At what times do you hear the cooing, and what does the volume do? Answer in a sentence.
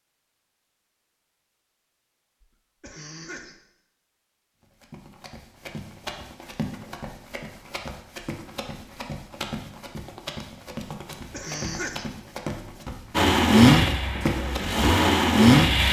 The cooing can't be heard in this clip.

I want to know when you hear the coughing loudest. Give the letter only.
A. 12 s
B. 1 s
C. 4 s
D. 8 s
A.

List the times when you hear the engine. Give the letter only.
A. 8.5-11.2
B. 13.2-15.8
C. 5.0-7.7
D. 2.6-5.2
B.